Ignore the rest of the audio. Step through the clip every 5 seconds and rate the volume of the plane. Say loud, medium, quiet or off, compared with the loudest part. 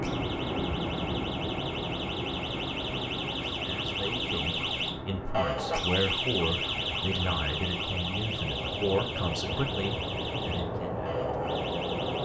loud, medium, loud.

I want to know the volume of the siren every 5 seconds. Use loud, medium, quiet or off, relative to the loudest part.
loud, loud, medium.